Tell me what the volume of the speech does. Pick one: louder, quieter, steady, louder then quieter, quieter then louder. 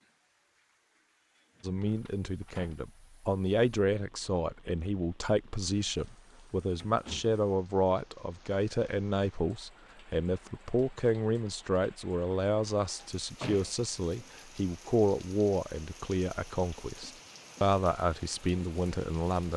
steady.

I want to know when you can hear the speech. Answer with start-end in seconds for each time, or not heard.
1.6-19.5.